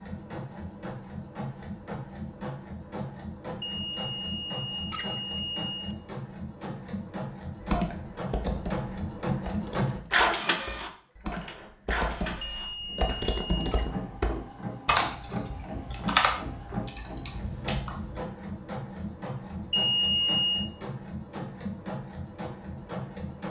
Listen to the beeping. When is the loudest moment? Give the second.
20 s.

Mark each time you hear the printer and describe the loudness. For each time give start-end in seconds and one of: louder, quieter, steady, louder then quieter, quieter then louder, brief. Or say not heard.
0.0-23.4 louder then quieter.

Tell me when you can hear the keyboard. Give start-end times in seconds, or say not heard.
7.6-18.2.